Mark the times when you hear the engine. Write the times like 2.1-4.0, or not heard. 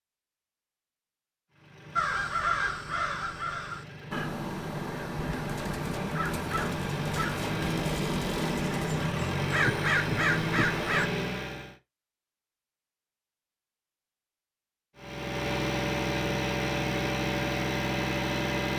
1.5-11.8, 14.9-18.7.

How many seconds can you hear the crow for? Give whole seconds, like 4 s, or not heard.
9 s.